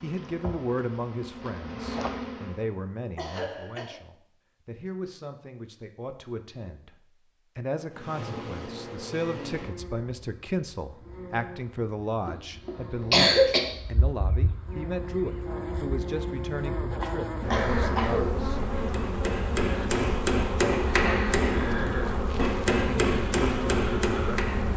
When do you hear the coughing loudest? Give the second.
13 s.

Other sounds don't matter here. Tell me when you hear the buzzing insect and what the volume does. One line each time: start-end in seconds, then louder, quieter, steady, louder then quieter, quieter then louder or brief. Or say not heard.
0.0-2.8 brief
7.9-24.7 louder.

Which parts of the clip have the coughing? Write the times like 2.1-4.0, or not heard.
3.1-4.0, 12.2-13.6, 17.0-18.4.